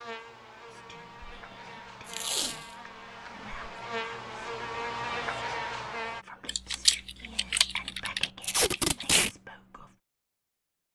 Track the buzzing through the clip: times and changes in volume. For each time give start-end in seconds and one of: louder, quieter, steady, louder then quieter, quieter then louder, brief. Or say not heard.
0.0-6.2 louder.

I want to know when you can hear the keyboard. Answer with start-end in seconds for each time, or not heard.
6.5-9.2.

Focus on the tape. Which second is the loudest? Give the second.
9 s.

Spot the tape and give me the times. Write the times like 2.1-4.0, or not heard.
2.0-2.6, 8.4-9.3.